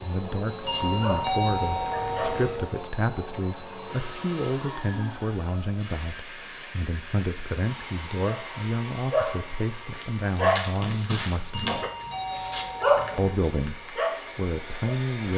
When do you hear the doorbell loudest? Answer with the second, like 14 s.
1 s.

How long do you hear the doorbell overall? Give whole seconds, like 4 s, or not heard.
4 s.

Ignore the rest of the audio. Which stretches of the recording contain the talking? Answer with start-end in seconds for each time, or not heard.
0.0-11.8, 13.2-15.3.